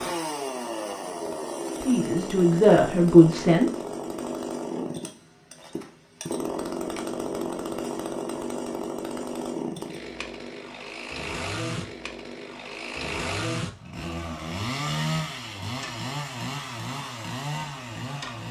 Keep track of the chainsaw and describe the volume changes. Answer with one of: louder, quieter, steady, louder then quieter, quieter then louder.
steady.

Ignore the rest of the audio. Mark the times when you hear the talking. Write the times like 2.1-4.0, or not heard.
1.9-3.8.